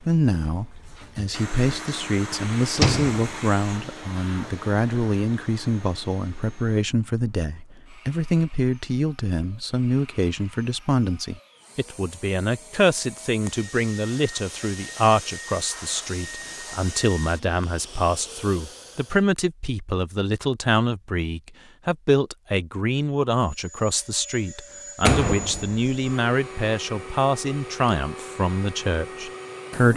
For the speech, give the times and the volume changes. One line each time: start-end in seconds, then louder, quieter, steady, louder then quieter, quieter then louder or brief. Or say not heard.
0.0-29.9 steady.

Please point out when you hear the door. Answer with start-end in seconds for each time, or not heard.
2.8-3.3, 25.0-25.9.